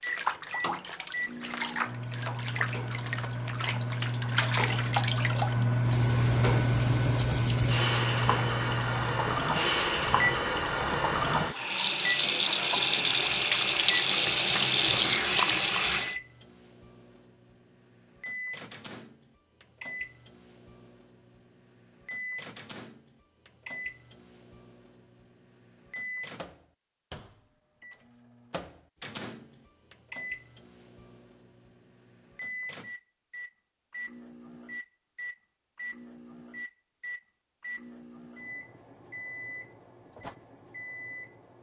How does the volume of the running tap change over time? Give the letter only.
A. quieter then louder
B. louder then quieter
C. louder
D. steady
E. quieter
C.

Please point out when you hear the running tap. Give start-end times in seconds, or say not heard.
0.0-16.1.